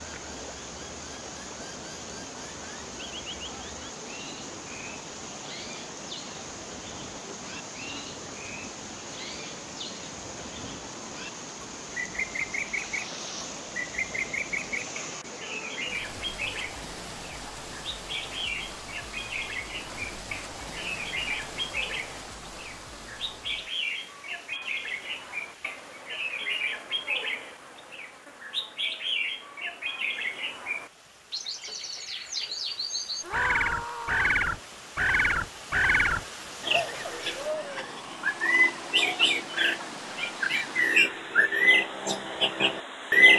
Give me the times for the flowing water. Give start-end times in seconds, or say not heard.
0.0-43.3.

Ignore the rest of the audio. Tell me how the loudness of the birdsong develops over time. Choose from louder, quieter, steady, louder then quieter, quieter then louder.
louder.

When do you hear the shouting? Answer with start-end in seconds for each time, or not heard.
15.4-15.8, 33.2-34.4.